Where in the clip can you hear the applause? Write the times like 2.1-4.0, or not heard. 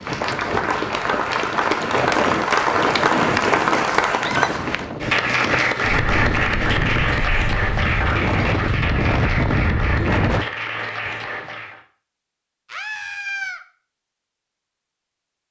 0.0-11.8.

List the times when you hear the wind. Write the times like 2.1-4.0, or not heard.
0.0-10.4.